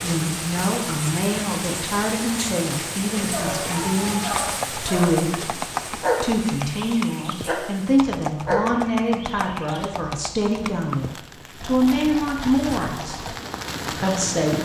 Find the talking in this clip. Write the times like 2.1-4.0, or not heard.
0.0-5.5, 6.2-13.2, 13.9-14.6.